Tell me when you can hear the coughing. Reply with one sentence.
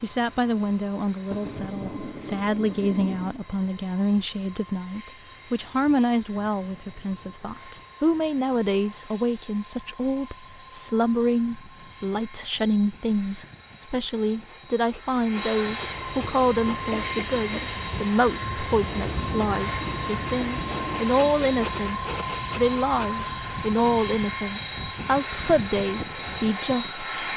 You can hear the coughing from 16.9 to 17.8 s.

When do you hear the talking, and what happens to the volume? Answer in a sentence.
You can hear the talking from 0.0 to 27.3 s, at a steady volume.